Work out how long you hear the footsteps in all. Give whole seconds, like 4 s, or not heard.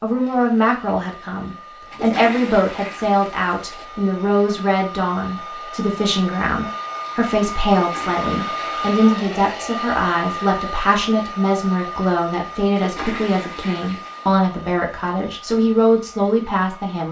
not heard.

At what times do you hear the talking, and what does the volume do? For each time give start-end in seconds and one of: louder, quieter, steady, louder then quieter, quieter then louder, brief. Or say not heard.
0.0-17.0 steady.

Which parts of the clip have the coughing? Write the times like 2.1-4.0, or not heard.
not heard.